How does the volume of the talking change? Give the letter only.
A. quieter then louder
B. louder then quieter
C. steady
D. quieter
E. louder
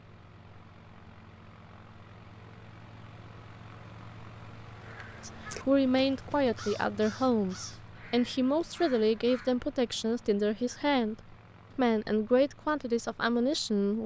C.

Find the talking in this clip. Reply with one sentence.
The talking can be heard from 5.2 to 14.0 s.